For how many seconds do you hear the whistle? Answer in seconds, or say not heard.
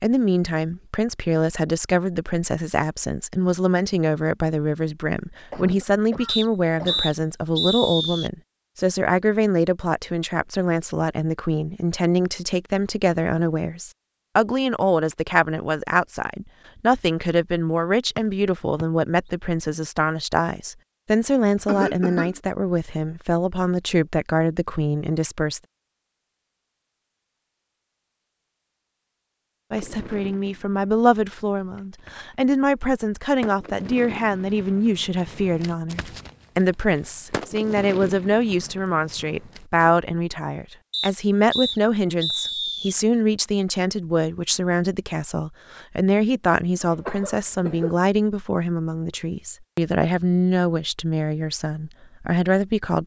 5 s.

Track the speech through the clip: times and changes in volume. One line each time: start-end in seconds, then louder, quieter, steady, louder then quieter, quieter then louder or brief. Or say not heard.
0.0-25.6 steady
29.7-53.0 steady.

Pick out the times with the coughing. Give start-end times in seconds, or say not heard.
5.5-7.1, 21.6-22.4, 46.8-48.0.